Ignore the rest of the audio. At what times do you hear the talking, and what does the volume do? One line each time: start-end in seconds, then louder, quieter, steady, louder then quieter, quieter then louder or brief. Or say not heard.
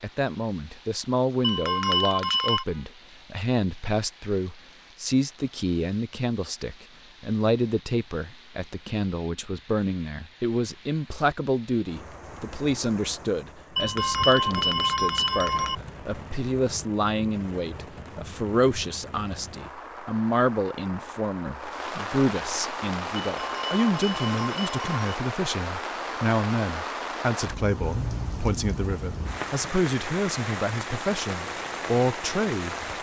0.0-32.8 steady.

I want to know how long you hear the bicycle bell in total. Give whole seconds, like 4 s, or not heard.
5 s.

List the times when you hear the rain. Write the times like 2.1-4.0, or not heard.
0.0-32.9.